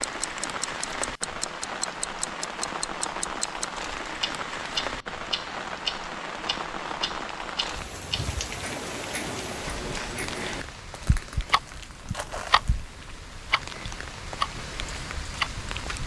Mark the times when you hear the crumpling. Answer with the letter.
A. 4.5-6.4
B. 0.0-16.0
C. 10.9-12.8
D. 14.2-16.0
C.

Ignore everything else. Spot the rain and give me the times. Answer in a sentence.
The rain can be heard from 0.0 to 16.0 s.